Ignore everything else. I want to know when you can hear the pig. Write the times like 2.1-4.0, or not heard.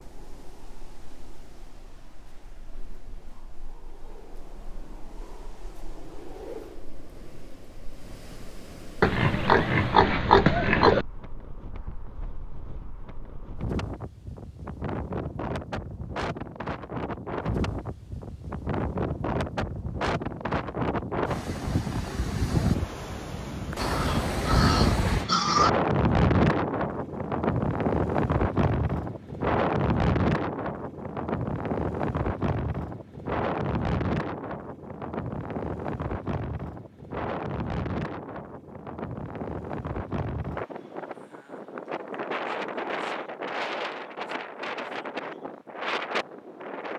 9.0-11.1, 23.8-25.7.